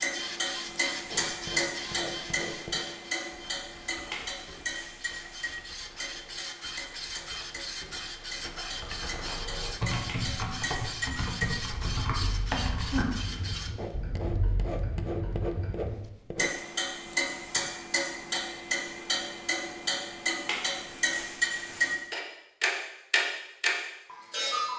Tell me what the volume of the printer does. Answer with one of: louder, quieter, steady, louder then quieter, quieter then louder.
quieter then louder.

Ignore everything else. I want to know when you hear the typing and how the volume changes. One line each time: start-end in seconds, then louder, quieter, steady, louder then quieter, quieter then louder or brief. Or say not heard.
3.5-13.5 louder.